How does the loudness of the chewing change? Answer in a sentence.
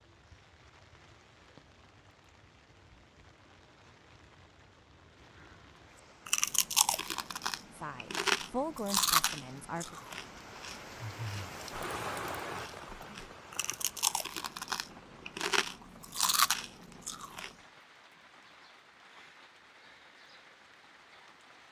The volume of the chewing goes down, then up.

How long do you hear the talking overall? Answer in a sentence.
You can hear the talking for 2 seconds altogether.